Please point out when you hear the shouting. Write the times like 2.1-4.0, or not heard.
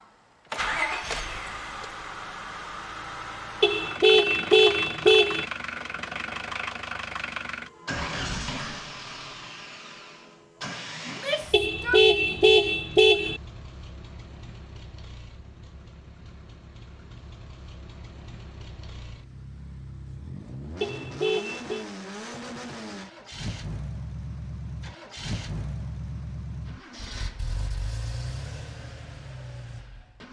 11.1-12.4.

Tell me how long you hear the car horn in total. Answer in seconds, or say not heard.
5 s.